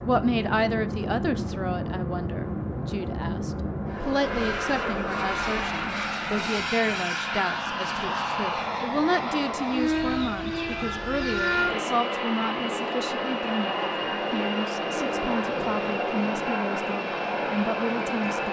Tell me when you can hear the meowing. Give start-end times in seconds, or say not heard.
not heard.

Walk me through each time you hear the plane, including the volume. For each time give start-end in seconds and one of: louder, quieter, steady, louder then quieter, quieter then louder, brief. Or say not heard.
0.0-18.4 steady.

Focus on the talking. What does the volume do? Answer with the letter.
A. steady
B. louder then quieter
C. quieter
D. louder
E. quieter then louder
A.